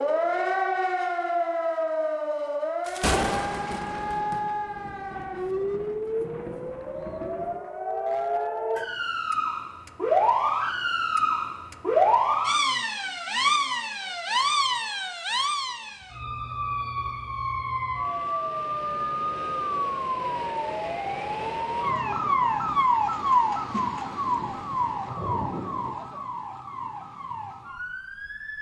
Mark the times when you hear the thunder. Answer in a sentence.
The thunder can be heard from 2.9 to 7.5 s and from 24.4 to 25.9 s.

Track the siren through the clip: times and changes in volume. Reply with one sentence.
You can hear the siren from 0.0 to 28.5 s, at a steady volume.